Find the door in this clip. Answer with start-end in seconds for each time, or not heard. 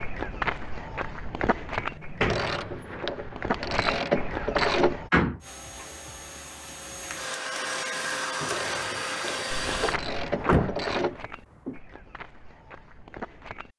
1.8-3.0, 5.1-5.8, 9.8-11.8.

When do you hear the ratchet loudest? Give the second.
5 s.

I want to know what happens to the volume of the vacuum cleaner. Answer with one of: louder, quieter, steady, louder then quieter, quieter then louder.
louder.